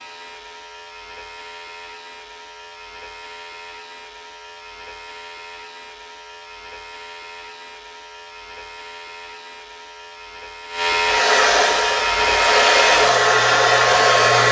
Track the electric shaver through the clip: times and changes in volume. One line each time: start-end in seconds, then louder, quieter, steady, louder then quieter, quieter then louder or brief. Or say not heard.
0.0-14.4 louder.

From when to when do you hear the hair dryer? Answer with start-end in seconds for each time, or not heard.
11.0-14.4.